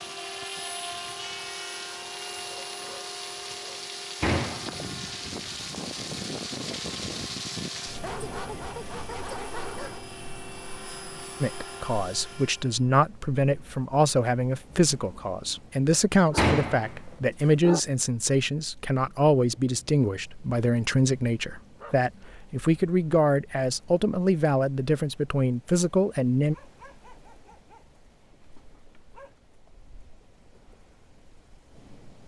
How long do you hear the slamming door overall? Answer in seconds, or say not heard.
2 s.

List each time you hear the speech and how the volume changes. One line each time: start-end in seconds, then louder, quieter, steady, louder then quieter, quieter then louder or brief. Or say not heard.
11.4-26.6 steady.